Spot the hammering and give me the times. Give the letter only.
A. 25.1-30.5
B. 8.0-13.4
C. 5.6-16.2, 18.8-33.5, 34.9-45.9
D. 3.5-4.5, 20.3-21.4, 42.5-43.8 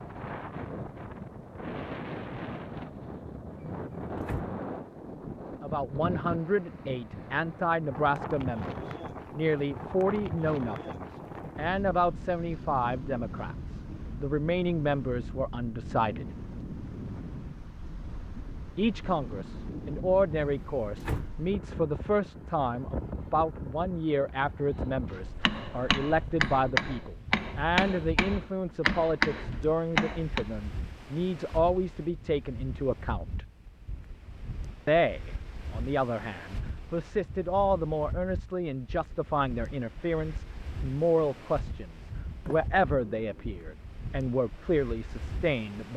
A.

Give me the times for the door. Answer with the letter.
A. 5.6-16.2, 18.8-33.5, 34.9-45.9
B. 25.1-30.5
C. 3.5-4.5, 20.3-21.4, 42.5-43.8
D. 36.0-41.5
C.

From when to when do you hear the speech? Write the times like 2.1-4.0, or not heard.
5.6-16.2, 18.8-33.5, 34.9-45.9.